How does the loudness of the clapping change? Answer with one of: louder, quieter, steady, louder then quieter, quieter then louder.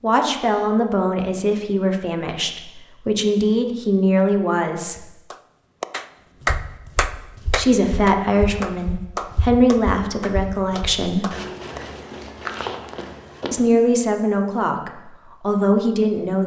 quieter.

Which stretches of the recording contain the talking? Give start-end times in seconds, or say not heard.
0.0-5.0, 7.5-11.2, 13.5-16.4.